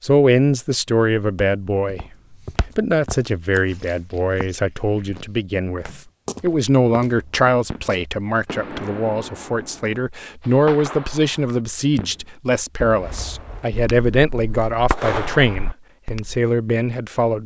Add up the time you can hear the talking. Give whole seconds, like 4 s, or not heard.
17 s.